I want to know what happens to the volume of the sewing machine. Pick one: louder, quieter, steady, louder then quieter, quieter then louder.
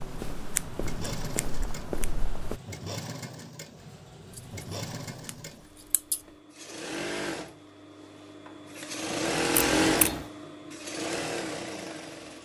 louder.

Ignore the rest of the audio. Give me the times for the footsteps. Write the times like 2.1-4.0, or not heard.
0.0-2.6.